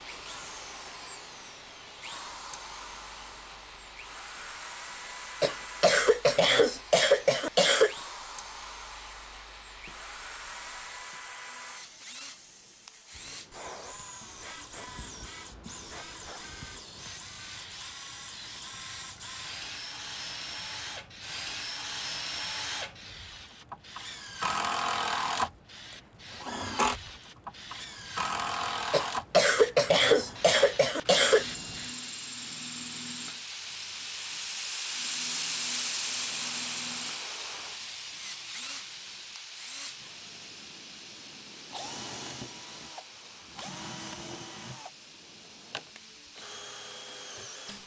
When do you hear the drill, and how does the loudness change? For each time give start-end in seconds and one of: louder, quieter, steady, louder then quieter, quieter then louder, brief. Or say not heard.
0.0-47.8 louder then quieter.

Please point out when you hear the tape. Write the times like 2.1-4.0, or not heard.
not heard.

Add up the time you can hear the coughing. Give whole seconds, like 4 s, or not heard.
5 s.